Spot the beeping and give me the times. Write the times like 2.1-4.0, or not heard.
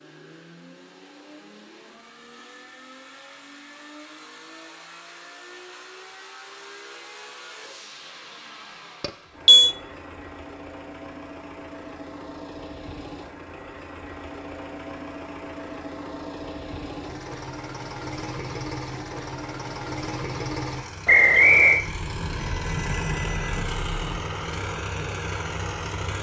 9.0-9.8, 21.9-24.2.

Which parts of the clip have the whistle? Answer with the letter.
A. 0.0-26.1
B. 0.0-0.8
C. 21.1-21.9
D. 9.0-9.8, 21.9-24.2
C.